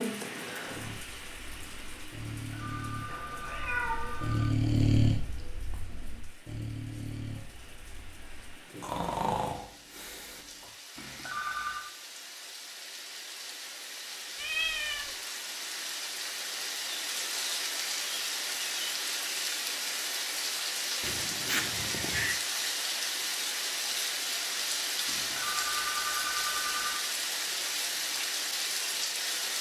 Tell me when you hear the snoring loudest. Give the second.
5 s.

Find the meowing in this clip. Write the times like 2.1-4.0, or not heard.
3.0-4.2, 14.3-15.1, 21.0-22.4.